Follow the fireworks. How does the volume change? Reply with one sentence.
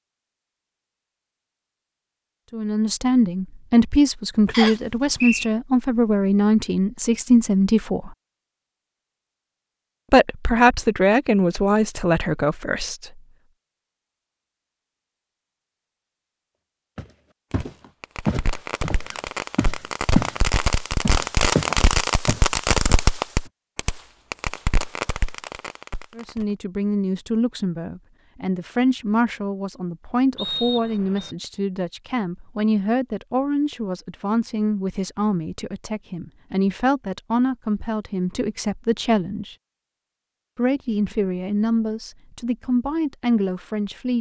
The volume of the fireworks goes up, then down.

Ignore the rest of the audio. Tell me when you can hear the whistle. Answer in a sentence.
The whistle can be heard from 4.5 to 5.5 s and from 30.4 to 31.4 s.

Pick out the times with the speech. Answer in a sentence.
The speech can be heard from 2.5 to 8.2 s, from 10.1 to 13.1 s, from 26.1 to 39.5 s and from 40.5 to 44.1 s.